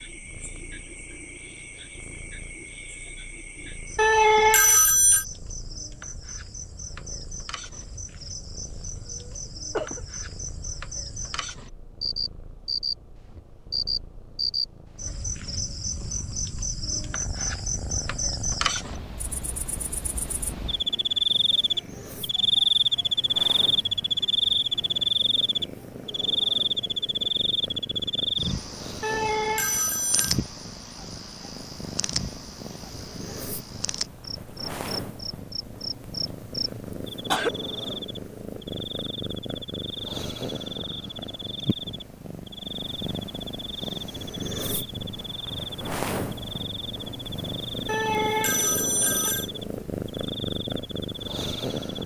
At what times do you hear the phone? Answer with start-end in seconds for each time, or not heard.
4.0-5.2, 29.0-30.4, 47.9-49.5.